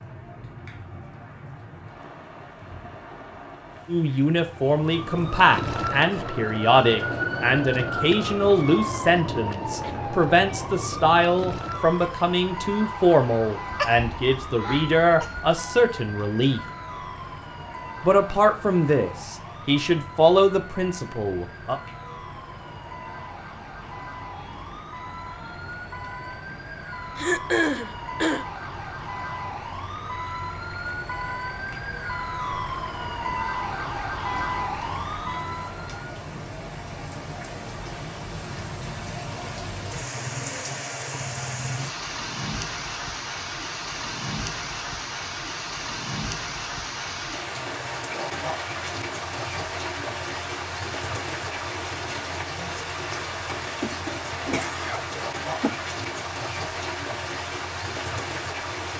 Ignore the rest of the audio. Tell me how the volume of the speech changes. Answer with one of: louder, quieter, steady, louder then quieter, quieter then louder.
steady.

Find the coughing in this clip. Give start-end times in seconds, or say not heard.
13.7-15.5, 27.1-28.4, 53.8-55.8.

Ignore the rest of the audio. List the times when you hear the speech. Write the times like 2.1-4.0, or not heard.
3.9-16.6, 18.0-21.8.